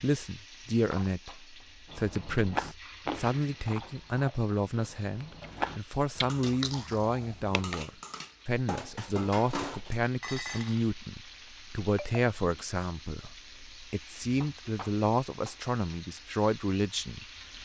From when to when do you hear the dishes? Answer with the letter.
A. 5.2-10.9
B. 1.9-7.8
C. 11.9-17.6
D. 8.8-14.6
A.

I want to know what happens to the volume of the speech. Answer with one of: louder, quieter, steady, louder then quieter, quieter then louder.
steady.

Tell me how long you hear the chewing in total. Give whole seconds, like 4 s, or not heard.
6 s.